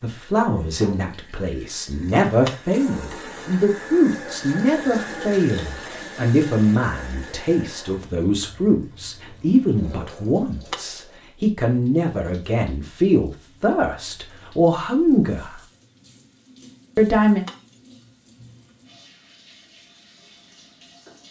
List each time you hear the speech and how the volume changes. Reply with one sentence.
You can hear the speech from 0.0 to 15.6 s, at a steady volume; and briefly from 16.9 to 17.4 s.